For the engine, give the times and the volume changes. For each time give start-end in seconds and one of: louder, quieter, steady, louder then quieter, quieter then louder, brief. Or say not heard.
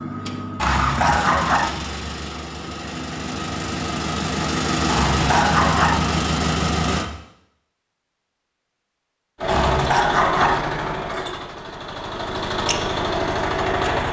0.0-7.1 quieter then louder
9.4-14.0 quieter then louder.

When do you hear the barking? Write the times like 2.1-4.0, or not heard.
0.6-1.7, 4.8-6.0, 9.4-10.6.